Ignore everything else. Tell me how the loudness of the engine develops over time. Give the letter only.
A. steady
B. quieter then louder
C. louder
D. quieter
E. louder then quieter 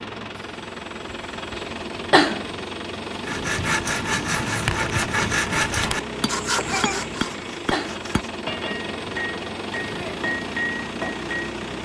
A.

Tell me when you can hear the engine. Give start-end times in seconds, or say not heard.
0.0-11.7.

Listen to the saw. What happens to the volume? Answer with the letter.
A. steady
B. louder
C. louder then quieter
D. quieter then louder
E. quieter
E.